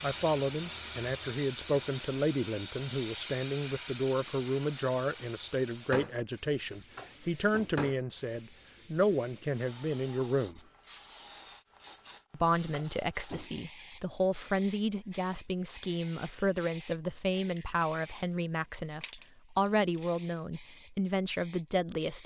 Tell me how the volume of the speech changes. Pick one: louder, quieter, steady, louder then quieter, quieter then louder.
steady.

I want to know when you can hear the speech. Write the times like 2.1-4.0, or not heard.
0.0-10.6, 12.3-22.2.